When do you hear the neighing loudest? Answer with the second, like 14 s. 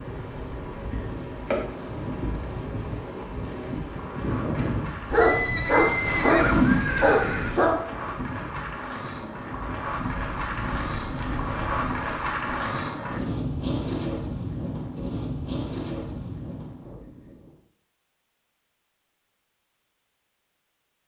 7 s.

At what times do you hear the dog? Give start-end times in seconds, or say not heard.
5.1-7.8.